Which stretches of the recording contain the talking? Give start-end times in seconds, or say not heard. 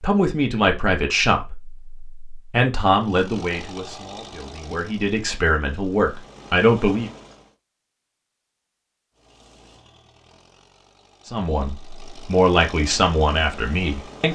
0.0-7.1, 11.2-14.3.